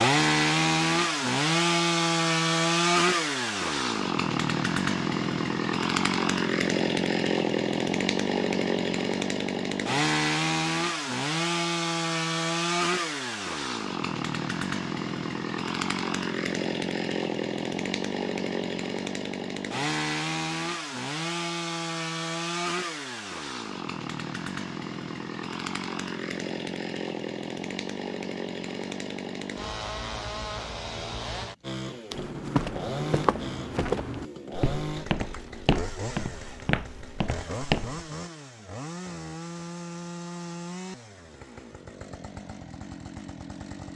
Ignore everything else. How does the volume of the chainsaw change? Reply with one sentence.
The loudness of the chainsaw goes down.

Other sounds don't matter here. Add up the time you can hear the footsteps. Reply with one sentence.
You can hear the footsteps for 6 seconds altogether.